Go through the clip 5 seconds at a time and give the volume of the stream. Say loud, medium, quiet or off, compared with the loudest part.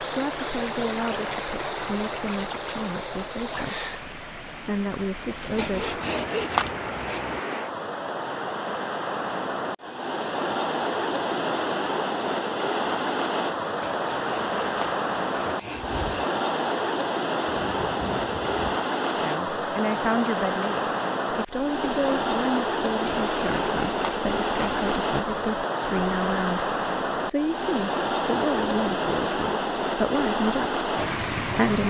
medium, medium, loud, loud, loud, loud, loud.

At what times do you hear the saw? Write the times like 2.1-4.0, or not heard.
5.5-7.2, 13.8-16.3, 23.1-24.8.